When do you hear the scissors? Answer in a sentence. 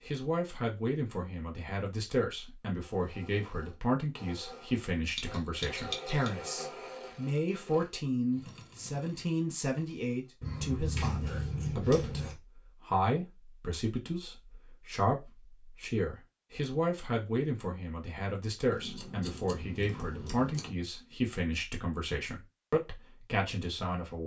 The scissors can be heard from 5.2 to 6.3 s, from 10.4 to 12.3 s and from 18.7 to 20.8 s.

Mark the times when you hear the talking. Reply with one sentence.
You can hear the talking from 0.1 to 24.2 s.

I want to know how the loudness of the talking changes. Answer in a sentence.
The loudness of the talking stays about the same.